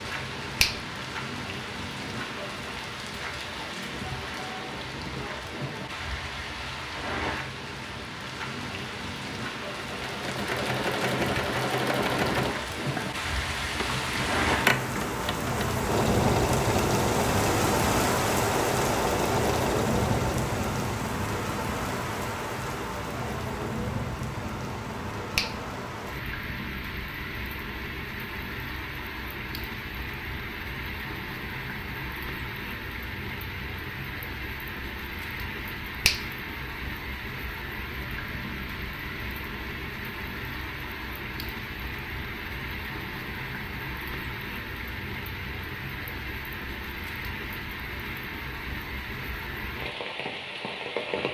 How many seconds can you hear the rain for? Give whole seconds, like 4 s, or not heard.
51 s.